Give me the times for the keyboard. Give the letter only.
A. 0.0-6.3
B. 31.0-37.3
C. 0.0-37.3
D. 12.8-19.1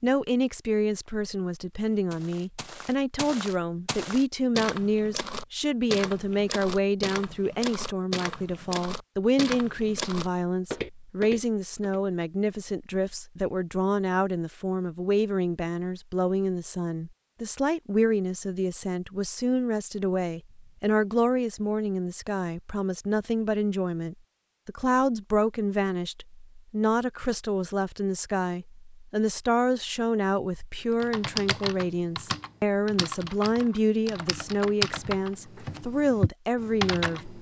B.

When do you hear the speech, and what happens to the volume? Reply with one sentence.
You can hear the speech from 0.0 to 37.3 s, at a steady volume.